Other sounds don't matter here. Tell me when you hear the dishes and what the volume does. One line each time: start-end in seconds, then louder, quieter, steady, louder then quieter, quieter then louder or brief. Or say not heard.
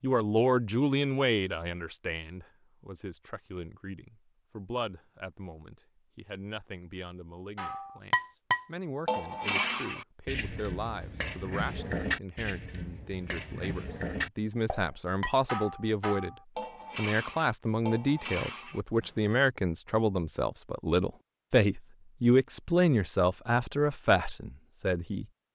7.5-19.4 quieter.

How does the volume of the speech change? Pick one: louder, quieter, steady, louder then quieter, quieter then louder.
quieter then louder.